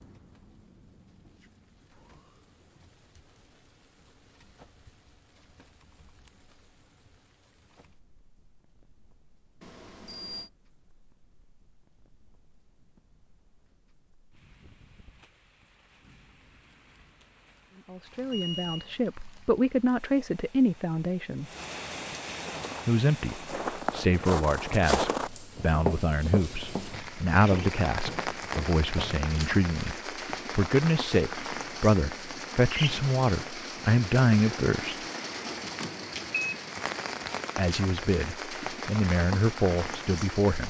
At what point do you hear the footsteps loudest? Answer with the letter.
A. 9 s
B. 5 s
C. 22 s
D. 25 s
D.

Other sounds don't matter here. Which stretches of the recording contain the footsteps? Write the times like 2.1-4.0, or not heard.
22.4-29.2.